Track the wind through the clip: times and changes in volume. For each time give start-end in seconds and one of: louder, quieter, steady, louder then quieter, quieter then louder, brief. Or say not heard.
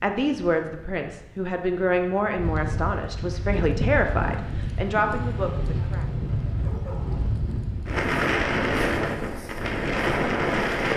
0.2-10.9 louder.